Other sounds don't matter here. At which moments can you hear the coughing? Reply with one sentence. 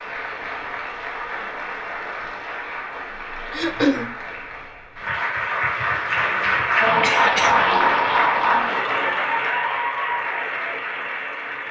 The coughing can be heard from 3.5 to 4.1 s and from 7.0 to 7.5 s.